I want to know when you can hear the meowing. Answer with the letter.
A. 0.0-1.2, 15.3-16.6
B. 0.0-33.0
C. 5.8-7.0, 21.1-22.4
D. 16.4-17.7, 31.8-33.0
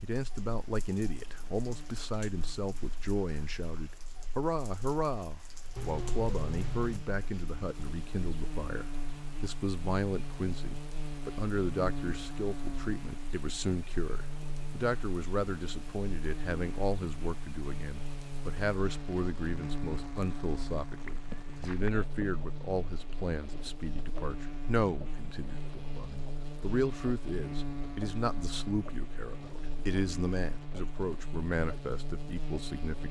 C.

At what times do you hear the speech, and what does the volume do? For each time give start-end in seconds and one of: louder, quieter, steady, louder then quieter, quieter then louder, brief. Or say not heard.
0.0-33.0 steady.